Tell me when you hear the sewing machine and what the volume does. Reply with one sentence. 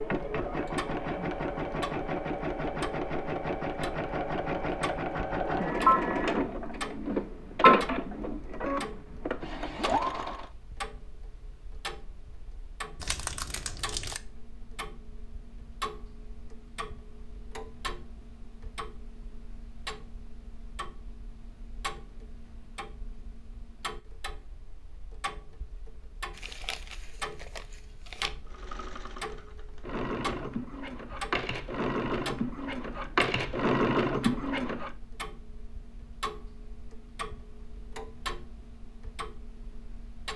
You can hear the sewing machine from 0.0 to 10.5 s, getting louder then quieter; and from 28.4 to 34.9 s, getting louder.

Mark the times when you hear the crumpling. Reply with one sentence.
The crumpling can be heard from 12.9 to 14.2 s and from 26.3 to 28.3 s.